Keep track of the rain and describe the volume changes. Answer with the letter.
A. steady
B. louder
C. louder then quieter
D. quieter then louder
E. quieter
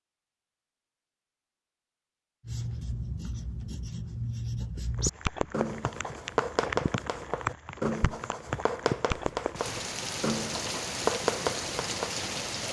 A.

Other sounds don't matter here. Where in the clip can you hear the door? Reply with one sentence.
You can't hear the door here.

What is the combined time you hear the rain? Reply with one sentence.
The rain can be heard for 8 seconds in total.